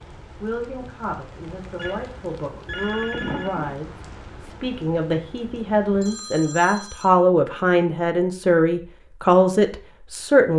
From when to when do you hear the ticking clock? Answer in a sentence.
You can't hear the ticking clock here.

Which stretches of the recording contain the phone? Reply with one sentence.
The phone can be heard from 1.8 to 3.8 s and from 6.0 to 7.1 s.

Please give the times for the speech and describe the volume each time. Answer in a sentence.
The speech can be heard from 0.4 to 10.5 s, getting louder.